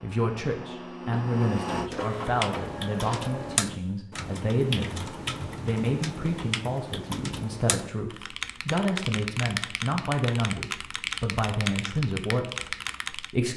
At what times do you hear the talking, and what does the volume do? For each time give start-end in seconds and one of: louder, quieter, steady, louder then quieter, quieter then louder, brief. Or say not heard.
0.0-13.5 steady.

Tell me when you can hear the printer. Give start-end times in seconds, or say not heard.
0.0-3.6.